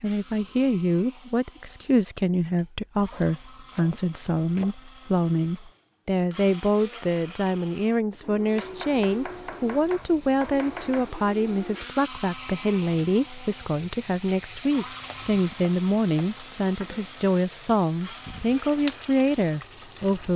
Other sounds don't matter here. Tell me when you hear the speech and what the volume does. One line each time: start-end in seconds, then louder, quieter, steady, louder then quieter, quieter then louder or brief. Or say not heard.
0.0-20.3 steady.